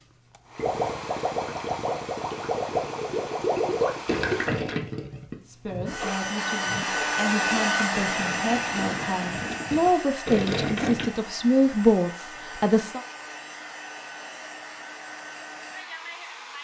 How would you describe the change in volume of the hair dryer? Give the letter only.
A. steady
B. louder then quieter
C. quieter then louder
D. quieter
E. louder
B.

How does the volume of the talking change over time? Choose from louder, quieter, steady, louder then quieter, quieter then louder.
louder.